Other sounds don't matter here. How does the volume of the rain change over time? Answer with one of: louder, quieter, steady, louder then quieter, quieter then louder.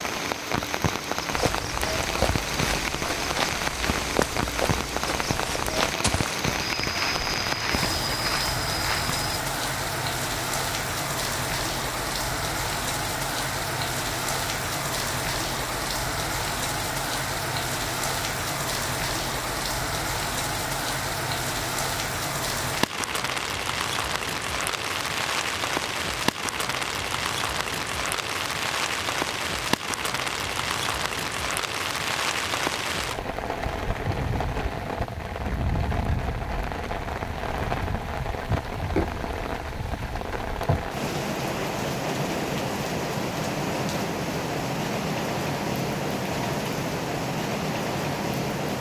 steady.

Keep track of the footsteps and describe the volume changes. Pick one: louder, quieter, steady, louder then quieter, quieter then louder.
steady.